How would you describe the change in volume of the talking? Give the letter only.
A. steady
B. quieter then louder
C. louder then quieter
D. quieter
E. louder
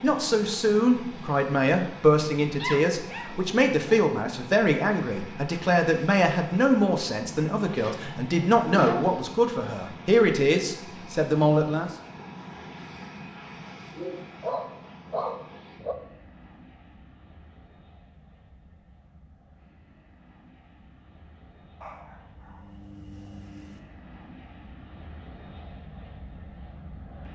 A.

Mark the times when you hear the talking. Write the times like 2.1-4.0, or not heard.
0.0-11.9.